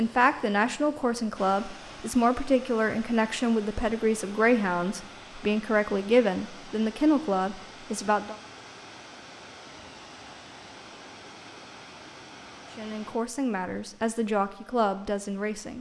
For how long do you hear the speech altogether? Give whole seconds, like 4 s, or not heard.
11 s.